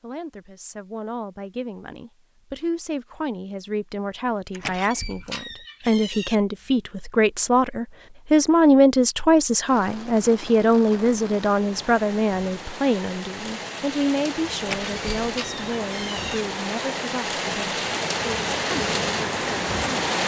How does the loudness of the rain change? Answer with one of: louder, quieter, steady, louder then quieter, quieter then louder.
louder.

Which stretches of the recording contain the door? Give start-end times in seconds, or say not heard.
4.5-6.3, 14.6-16.4.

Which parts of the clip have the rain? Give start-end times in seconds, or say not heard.
9.7-20.2.